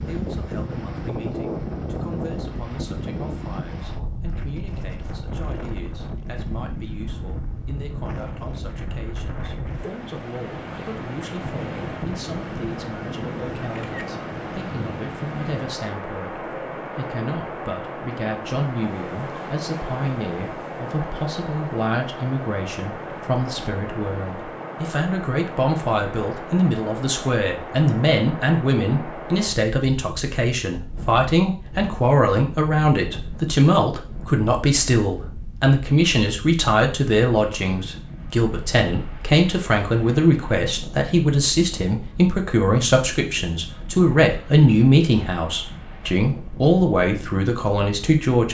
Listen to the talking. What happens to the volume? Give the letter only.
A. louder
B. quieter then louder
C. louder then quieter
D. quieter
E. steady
A.